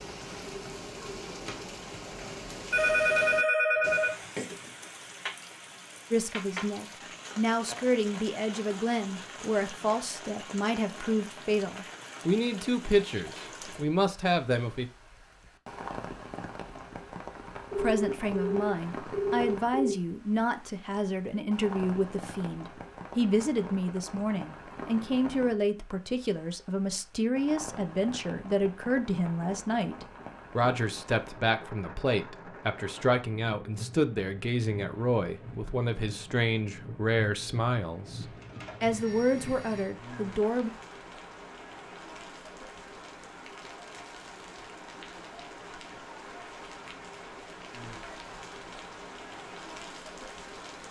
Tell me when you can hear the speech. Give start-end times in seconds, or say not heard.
6.1-14.8, 17.8-40.7.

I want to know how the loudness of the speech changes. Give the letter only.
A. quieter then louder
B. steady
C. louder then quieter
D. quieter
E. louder
B.